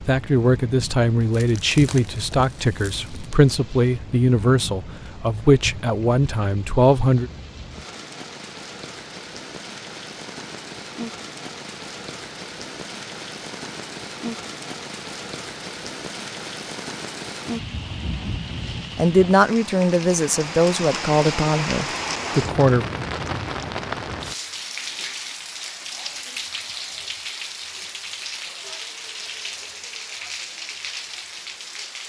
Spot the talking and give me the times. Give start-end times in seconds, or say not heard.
0.1-7.3, 18.9-22.9.